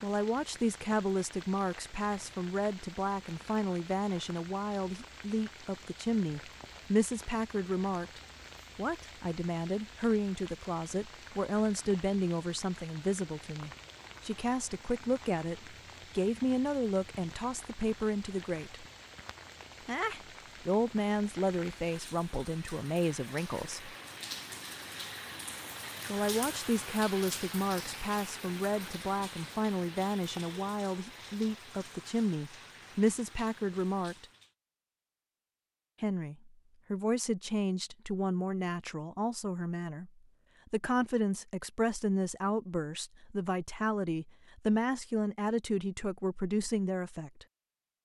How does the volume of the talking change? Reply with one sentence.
The loudness of the talking stays about the same.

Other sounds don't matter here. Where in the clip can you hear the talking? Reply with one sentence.
The talking can be heard from 0.0 to 18.9 s, from 19.9 to 23.9 s, from 26.1 to 34.2 s, from 36.0 to 40.1 s and from 40.7 to 47.5 s.